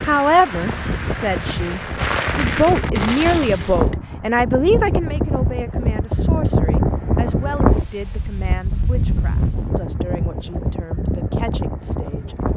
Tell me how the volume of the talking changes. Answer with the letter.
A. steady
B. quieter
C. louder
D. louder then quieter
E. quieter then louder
B.